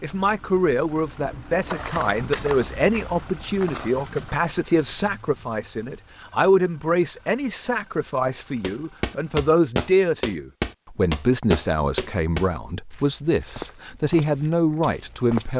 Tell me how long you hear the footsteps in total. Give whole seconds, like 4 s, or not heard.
10 s.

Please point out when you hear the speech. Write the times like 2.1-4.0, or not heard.
0.0-15.5.